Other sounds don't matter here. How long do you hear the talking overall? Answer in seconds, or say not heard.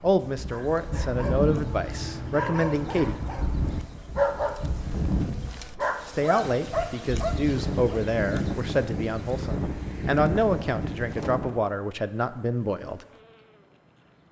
10 s.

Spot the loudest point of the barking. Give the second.
4 s.